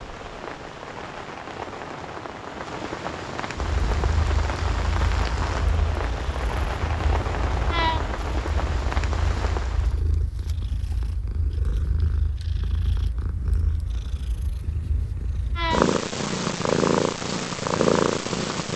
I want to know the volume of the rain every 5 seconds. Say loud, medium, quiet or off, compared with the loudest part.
loud, loud, off, off.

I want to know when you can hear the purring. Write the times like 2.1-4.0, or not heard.
3.5-18.7.